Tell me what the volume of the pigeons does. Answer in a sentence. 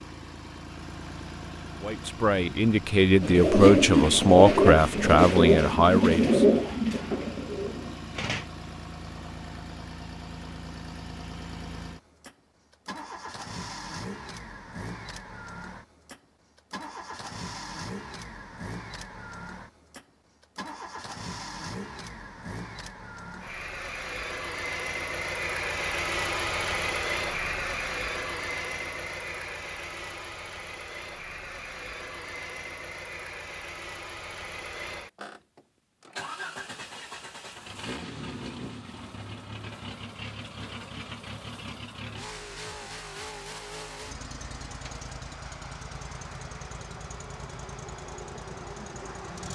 The loudness of the pigeons goes down.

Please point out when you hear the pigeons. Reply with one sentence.
The pigeons can be heard from 3.2 to 8.5 s.